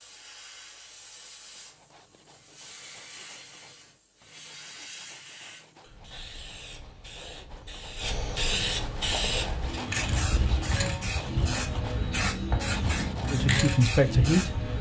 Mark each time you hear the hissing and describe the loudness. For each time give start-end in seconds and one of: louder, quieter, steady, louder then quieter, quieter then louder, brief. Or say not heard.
0.0-14.7 louder.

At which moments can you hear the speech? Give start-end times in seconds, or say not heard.
13.3-14.6.